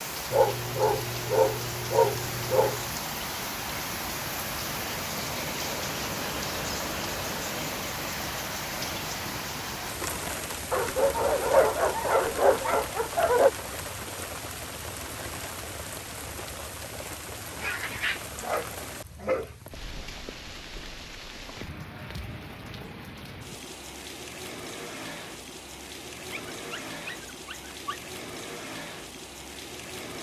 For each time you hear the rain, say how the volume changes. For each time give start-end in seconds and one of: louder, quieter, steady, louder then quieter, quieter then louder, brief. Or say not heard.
0.0-30.1 quieter.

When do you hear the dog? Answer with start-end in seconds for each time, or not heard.
0.3-2.9, 10.7-13.5, 17.1-19.6, 26.3-28.1.